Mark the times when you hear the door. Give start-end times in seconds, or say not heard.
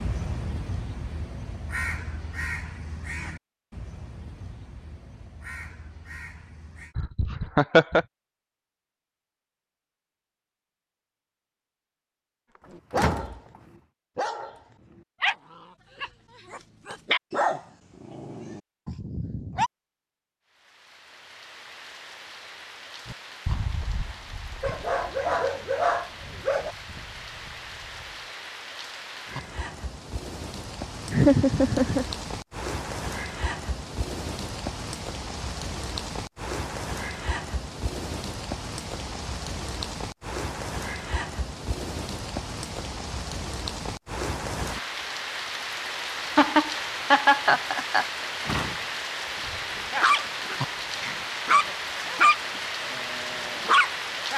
12.9-13.6, 48.4-49.9.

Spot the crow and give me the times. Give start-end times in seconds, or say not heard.
0.0-7.0, 23.1-28.3.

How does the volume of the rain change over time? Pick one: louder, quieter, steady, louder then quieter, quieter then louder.
louder.